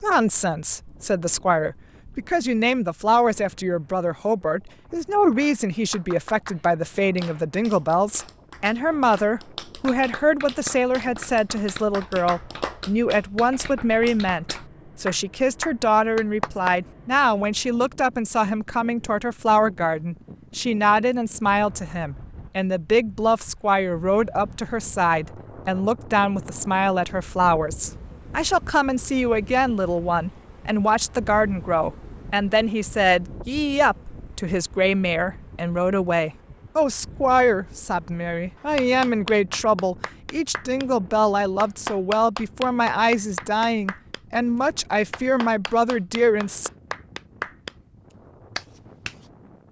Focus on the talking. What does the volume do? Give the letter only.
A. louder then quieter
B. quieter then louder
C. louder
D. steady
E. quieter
D.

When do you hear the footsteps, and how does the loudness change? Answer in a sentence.
The footsteps can't be heard in this clip.